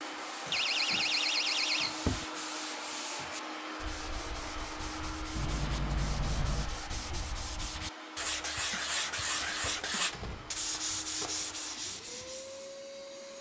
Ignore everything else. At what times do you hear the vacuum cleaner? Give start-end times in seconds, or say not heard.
0.0-13.3.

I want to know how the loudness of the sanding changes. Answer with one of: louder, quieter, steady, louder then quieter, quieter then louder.
louder.